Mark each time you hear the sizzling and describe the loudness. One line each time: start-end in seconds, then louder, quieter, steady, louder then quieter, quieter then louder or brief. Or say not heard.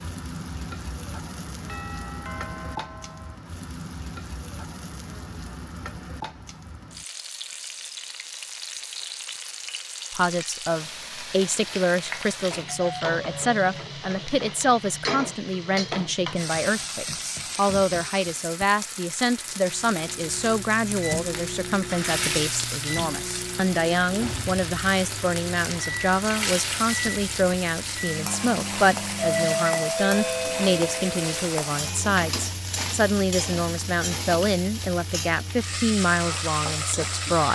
0.0-37.5 louder.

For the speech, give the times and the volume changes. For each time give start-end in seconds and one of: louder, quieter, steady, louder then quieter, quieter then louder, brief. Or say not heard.
10.1-37.5 steady.